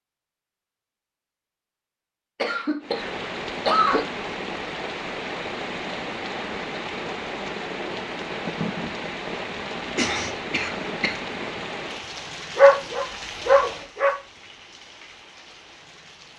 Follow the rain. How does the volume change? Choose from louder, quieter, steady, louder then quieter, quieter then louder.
quieter.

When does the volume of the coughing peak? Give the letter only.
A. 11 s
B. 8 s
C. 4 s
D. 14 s
C.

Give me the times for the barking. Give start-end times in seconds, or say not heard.
12.6-14.1.